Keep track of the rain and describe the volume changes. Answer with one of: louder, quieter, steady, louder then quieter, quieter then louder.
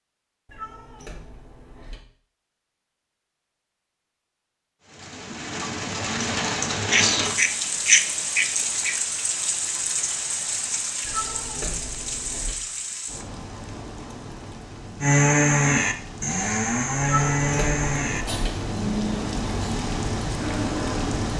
quieter then louder.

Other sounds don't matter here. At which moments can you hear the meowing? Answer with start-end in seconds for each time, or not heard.
0.5-2.0, 11.0-12.6, 17.1-18.5.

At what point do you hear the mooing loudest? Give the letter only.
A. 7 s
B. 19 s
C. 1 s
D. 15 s
D.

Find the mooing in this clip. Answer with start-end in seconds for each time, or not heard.
15.0-21.3.